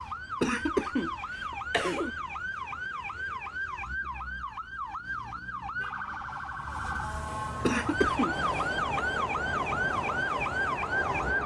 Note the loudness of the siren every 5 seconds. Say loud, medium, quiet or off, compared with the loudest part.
medium, loud, loud.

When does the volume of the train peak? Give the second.
11 s.